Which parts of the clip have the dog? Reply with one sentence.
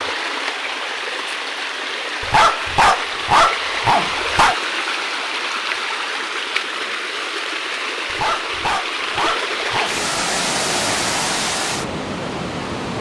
You can hear the dog from 2.2 to 4.5 s and from 8.1 to 10.0 s.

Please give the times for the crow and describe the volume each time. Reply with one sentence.
The crow can't be heard in this clip.